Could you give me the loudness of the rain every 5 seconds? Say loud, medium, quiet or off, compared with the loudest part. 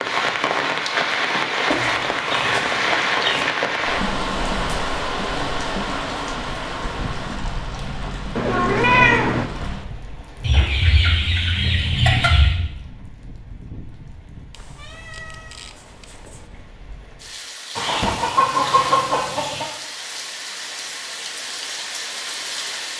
loud, medium, quiet, quiet, medium.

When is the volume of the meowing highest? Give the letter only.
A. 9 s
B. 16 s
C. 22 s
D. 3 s
A.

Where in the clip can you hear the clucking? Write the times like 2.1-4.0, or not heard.
1.7-3.5, 10.4-12.6, 17.8-19.6.